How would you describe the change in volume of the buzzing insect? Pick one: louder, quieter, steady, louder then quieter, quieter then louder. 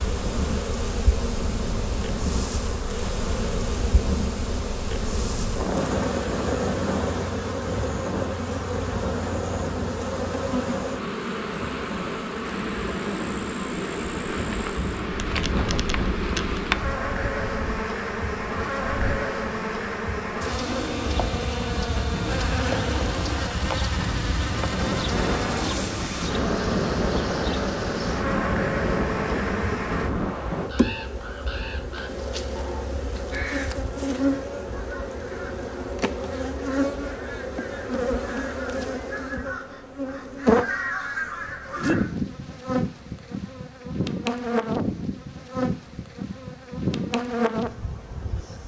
steady.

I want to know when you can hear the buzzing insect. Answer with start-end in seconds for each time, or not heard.
0.0-48.6.